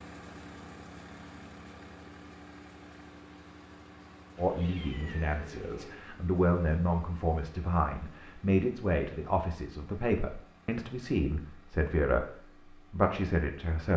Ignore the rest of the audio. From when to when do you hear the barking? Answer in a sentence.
The barking can't be heard in this clip.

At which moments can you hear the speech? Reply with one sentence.
You can hear the speech from 4.3 to 13.9 s.